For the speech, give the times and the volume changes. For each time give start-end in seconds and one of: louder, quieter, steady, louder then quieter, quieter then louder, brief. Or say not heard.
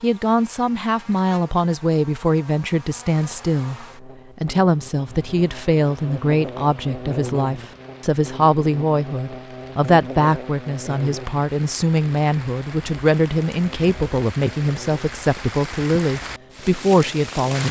0.0-17.6 steady.